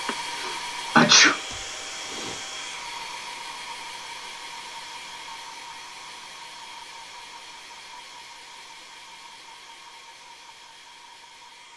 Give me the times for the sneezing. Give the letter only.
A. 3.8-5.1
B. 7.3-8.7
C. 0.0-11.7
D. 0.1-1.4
D.